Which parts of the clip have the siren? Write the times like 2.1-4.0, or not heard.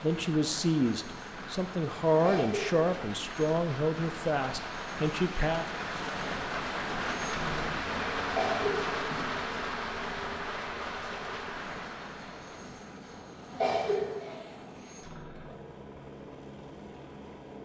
not heard.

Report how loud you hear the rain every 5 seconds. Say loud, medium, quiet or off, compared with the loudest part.
medium, loud, medium, off.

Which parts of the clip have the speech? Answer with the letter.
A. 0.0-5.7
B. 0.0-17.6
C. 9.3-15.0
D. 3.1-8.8
A.